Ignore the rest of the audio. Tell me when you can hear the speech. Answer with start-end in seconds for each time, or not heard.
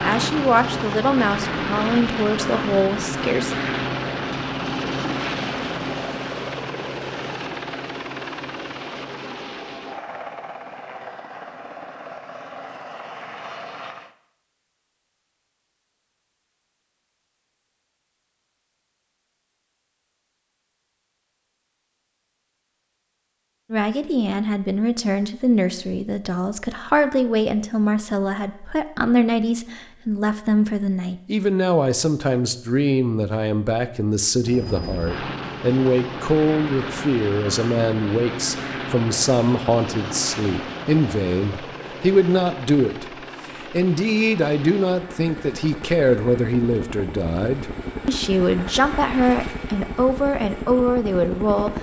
0.0-3.5, 23.7-51.7.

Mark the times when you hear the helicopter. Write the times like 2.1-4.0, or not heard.
0.0-14.2, 34.4-51.7.